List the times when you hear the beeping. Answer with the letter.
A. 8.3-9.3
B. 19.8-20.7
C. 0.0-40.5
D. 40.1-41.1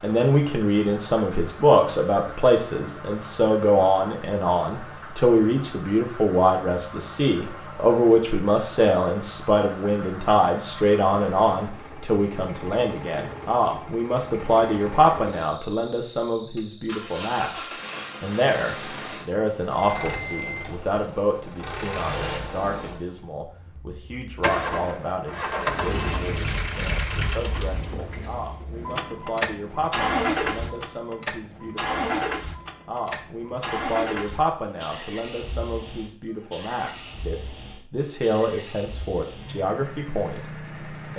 B.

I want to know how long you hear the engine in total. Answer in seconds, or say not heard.
41 s.